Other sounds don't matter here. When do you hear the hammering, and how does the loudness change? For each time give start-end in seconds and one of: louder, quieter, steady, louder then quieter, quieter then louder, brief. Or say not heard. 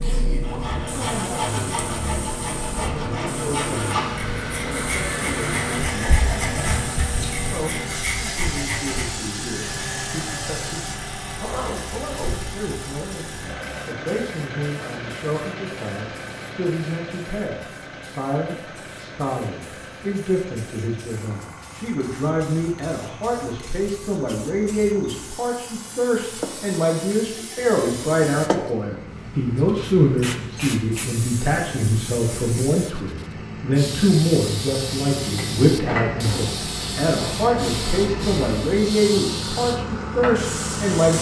not heard.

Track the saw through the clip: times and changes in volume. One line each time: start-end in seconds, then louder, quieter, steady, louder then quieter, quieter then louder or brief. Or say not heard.
0.4-9.1 steady.